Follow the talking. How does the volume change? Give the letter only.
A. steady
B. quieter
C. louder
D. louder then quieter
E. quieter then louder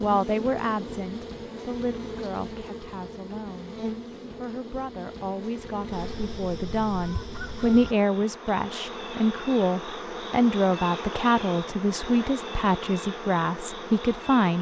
E.